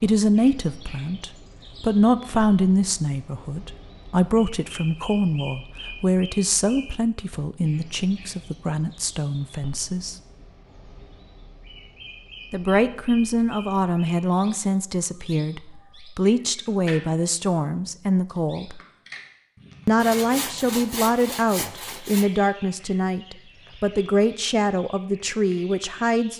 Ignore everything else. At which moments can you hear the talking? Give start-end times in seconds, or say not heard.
0.0-10.2, 12.5-18.8, 19.9-26.3.